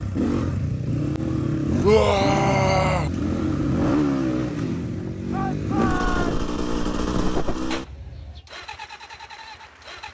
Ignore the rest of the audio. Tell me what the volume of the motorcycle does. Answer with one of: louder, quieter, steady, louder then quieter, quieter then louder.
quieter.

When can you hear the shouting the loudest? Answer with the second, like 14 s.
2 s.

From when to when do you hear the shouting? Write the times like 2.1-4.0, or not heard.
1.8-3.1, 5.3-6.5.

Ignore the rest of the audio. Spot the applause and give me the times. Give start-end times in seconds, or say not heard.
8.4-10.0.